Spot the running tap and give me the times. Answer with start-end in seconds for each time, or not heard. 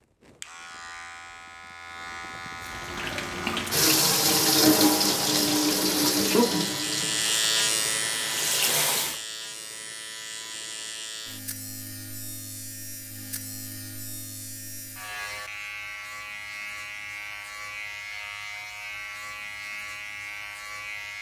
2.6-9.2.